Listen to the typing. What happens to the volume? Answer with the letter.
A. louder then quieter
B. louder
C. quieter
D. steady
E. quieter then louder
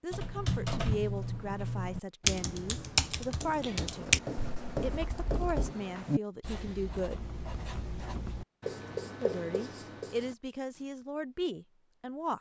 C.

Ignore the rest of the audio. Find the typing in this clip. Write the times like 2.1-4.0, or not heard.
0.1-5.5.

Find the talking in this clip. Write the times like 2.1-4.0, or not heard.
0.0-4.2, 4.8-7.3, 9.2-12.3.